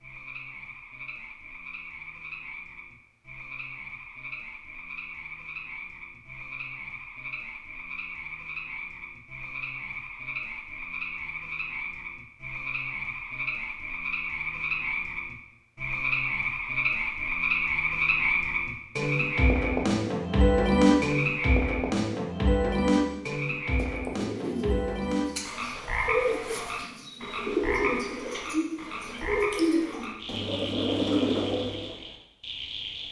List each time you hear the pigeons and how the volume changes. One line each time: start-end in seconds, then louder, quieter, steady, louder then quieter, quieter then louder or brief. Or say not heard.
23.8-31.9 louder.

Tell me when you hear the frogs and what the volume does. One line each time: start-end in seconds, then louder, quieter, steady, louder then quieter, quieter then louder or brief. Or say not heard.
0.0-33.0 louder then quieter.